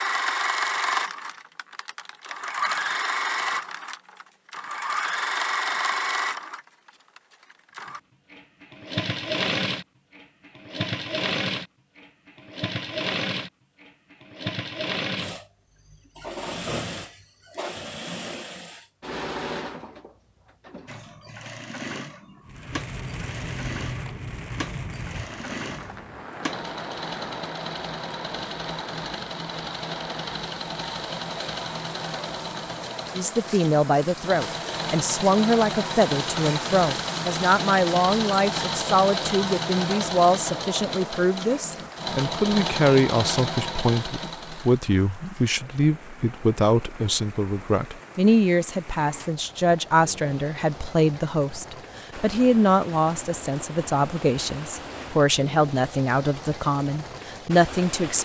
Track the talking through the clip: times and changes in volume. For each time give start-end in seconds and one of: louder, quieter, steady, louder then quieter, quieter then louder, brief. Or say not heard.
33.1-58.2 steady.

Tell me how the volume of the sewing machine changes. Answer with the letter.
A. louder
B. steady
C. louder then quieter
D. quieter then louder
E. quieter
D.